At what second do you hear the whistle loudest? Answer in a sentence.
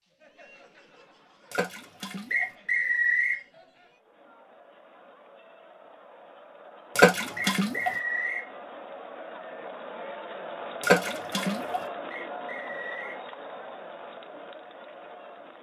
The volume of the whistle peaks at 3 seconds.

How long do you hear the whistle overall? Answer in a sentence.
The whistle can be heard for 3 seconds in total.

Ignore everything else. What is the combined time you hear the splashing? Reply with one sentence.
The splashing can be heard for 3 seconds in total.